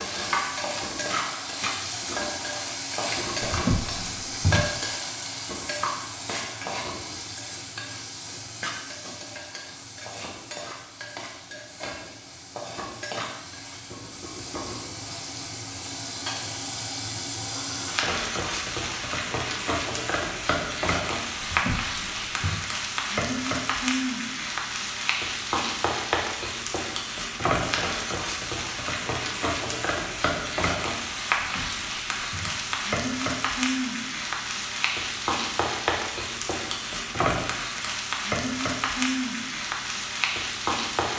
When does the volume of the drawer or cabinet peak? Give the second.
4 s.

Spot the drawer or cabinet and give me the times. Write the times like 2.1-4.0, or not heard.
3.5-4.8, 21.4-22.6, 31.4-32.7.